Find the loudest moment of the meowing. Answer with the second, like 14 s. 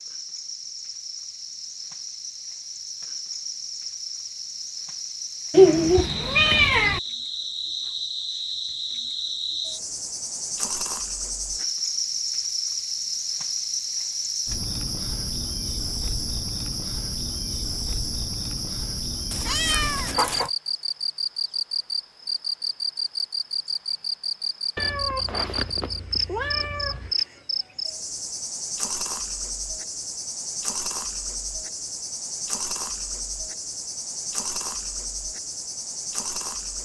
6 s.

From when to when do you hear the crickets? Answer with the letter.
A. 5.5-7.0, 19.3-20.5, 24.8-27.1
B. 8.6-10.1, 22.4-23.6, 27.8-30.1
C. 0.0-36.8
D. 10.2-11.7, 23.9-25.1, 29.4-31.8
C.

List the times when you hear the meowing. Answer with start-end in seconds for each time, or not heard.
5.5-7.0, 19.3-20.5, 24.8-27.1.